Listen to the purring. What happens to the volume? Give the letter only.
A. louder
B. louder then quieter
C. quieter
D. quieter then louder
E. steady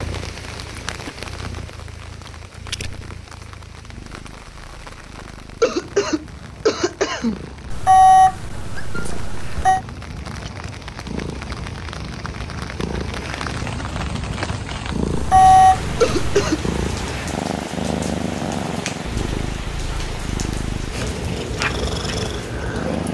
A.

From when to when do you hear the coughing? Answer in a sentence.
The coughing can be heard from 5.6 to 7.4 s and from 16.0 to 16.6 s.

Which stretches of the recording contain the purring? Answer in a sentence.
You can hear the purring from 0.0 to 23.0 s.